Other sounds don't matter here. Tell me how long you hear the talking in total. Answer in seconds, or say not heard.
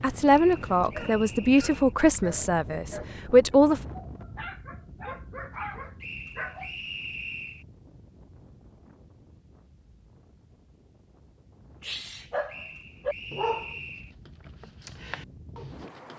4 s.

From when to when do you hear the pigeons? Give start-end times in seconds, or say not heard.
not heard.